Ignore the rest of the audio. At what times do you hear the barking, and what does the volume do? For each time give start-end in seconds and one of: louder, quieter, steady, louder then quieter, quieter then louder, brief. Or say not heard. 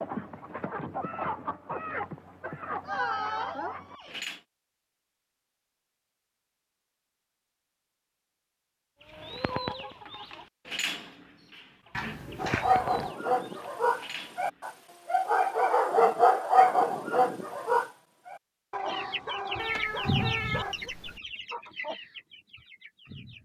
12.3-20.9 louder then quieter.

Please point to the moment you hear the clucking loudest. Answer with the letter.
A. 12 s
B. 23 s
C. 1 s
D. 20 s
D.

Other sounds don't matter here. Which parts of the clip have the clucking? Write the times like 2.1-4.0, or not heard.
0.0-4.4, 9.0-14.9, 18.8-23.4.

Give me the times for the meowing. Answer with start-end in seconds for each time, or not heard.
2.9-4.2, 11.9-13.1, 19.6-21.2.